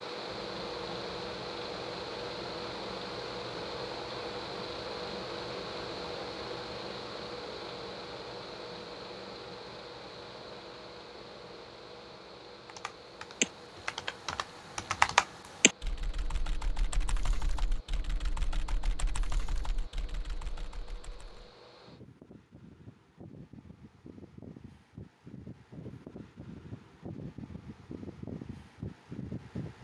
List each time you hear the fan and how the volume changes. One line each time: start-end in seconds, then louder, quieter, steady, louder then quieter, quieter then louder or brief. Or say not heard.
0.0-29.7 quieter then louder.